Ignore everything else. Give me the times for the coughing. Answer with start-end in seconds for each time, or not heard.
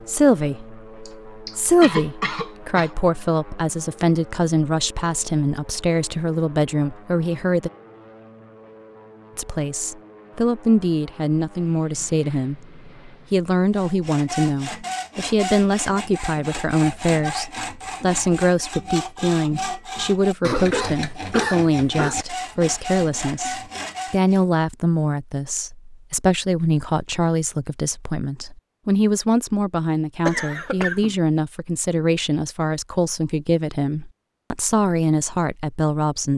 1.1-2.9, 20.4-22.1, 30.2-31.1.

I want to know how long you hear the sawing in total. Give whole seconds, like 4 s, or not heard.
11 s.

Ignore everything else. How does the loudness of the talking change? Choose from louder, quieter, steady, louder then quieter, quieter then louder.
steady.